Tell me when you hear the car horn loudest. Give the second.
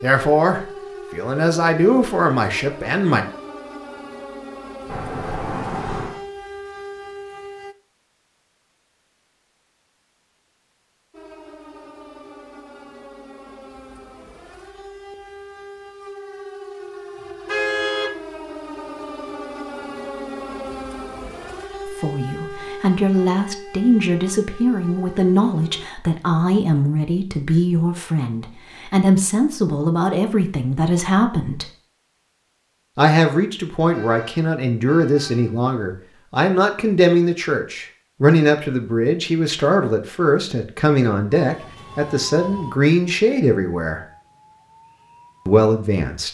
18 s.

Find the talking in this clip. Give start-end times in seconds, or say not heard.
0.0-3.2, 21.9-31.7, 33.0-44.0, 45.5-46.2.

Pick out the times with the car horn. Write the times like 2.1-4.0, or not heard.
4.8-6.2, 17.4-18.1, 33.9-35.6.